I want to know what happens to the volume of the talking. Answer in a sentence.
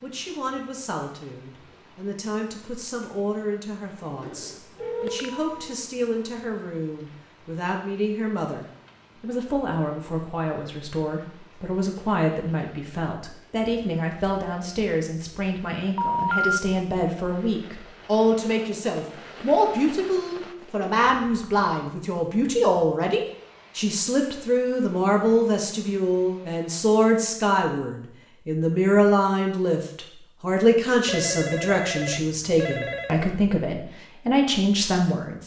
The volume of the talking goes up.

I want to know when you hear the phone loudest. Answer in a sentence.
The loudest moment of the phone is at 16 seconds.